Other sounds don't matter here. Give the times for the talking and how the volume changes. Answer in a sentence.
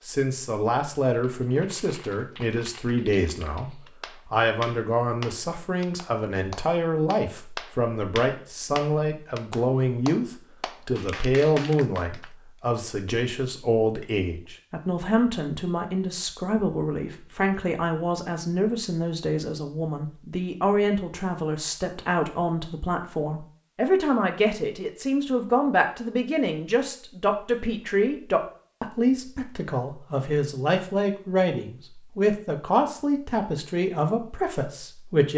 The talking can be heard from 0.0 to 35.3 s, at a steady volume.